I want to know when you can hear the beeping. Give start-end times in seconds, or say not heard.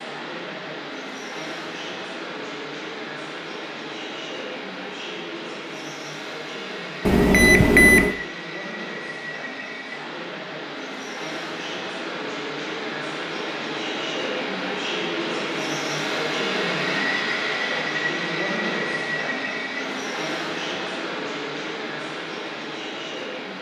7.0-8.2.